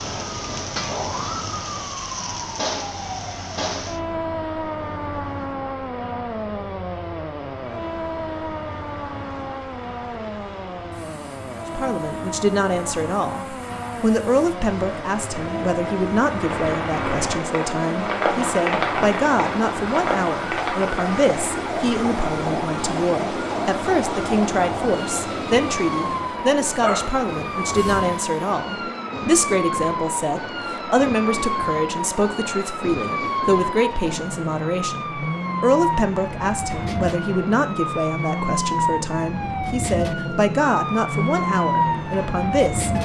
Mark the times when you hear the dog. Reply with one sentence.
You can hear the dog from 26.8 to 28.1 s.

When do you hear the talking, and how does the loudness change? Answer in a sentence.
The talking can be heard from 11.8 to 43.0 s, at a steady volume.